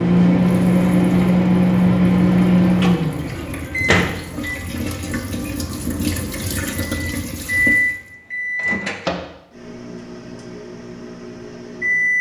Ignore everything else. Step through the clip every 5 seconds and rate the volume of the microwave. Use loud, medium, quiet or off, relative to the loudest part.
loud, medium, medium.